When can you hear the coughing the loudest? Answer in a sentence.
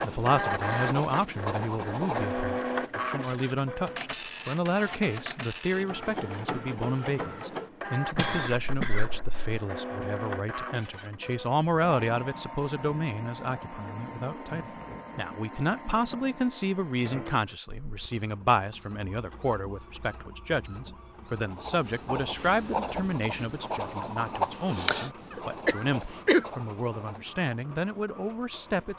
The loudest moment of the coughing is at 26 seconds.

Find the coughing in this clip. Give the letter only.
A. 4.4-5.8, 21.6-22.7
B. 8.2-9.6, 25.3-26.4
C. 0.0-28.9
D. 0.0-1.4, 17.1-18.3
B.